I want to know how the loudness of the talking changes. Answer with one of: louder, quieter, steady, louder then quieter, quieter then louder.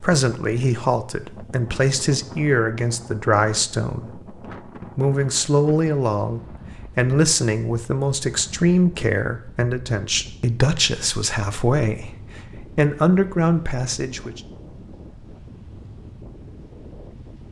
steady.